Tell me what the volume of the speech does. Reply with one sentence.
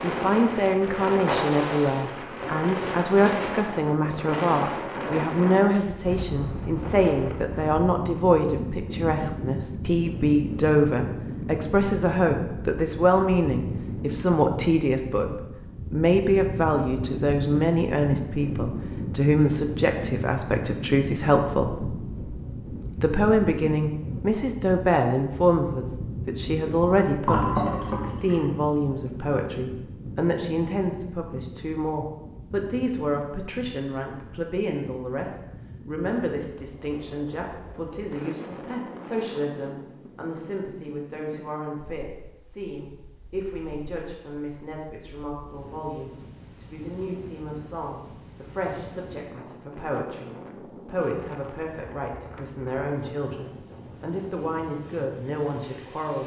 The loudness of the speech goes down.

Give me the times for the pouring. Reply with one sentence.
The pouring can be heard from 27.2 to 28.4 s.